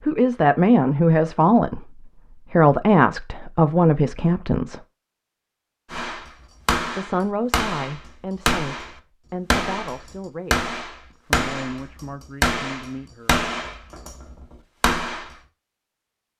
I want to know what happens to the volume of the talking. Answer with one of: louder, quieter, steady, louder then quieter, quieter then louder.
quieter.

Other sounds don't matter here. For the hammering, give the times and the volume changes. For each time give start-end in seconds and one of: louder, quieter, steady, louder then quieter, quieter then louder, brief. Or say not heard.
5.9-15.3 steady.